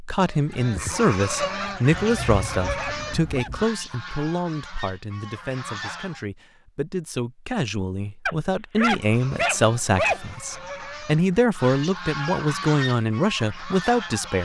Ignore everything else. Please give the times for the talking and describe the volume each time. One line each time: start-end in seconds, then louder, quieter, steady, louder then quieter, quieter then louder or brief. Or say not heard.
0.0-14.4 quieter then louder.